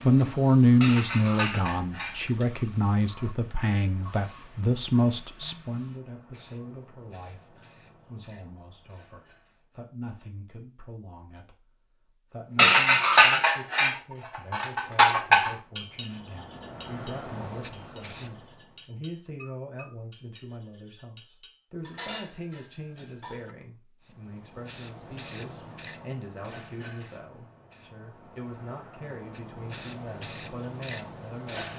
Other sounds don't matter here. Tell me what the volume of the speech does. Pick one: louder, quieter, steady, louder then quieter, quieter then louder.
quieter.